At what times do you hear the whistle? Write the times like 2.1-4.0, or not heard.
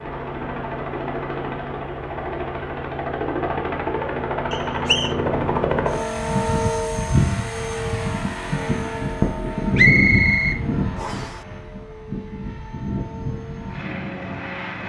4.5-5.2, 9.8-11.4.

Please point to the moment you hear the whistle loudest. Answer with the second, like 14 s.
10 s.